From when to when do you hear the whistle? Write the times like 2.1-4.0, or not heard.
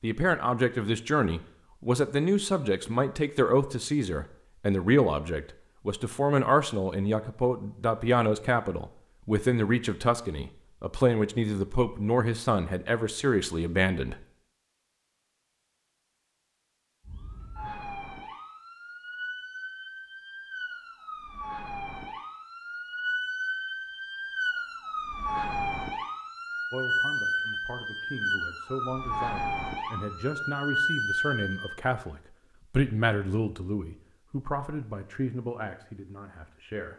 not heard.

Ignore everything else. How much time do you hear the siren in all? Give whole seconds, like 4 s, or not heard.
15 s.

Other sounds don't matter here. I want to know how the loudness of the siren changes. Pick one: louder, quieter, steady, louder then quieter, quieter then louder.
louder.